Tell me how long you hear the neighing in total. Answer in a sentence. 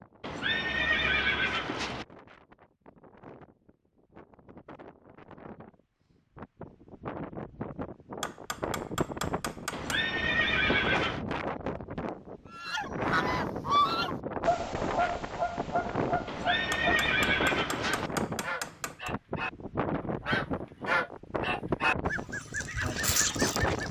The neighing can be heard for 5 seconds in total.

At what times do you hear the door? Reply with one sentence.
The door can't be heard in this clip.